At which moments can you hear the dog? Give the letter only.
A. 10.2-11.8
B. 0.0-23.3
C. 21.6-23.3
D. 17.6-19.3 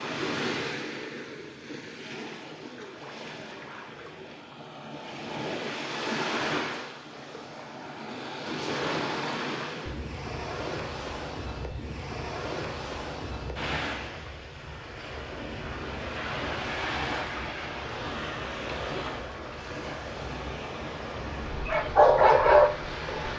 C.